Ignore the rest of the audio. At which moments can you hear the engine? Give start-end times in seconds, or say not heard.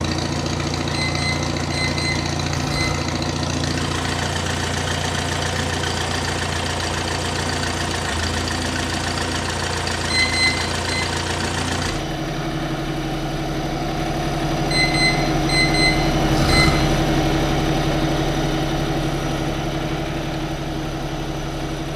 0.0-21.9.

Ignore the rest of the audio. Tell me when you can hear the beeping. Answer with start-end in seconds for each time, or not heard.
0.9-3.0, 10.1-11.1, 14.7-16.7.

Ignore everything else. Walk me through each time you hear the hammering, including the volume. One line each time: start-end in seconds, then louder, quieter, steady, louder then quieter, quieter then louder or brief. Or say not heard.
not heard.